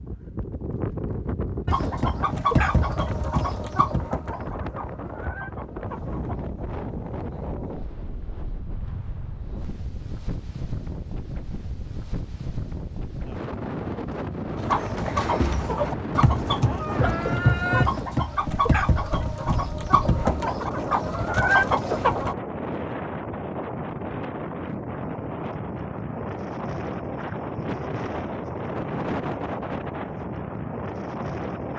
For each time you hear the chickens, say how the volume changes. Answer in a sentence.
The chickens can be heard from 1.6 to 6.3 s, getting quieter; and from 14.6 to 22.4 s, at a steady volume.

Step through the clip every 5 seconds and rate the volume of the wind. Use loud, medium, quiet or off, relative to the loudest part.
loud, medium, loud, loud, loud, loud, loud.